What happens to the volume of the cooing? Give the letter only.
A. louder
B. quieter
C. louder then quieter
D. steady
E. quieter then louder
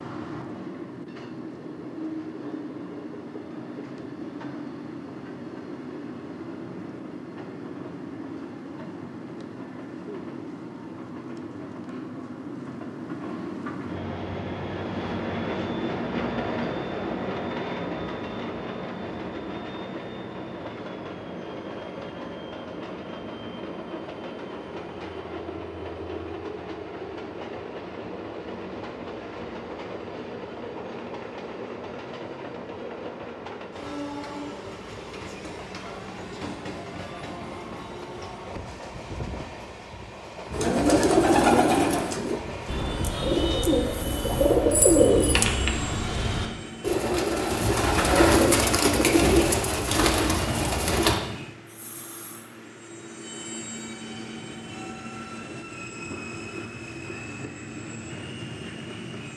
D.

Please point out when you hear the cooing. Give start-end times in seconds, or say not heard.
40.5-51.2.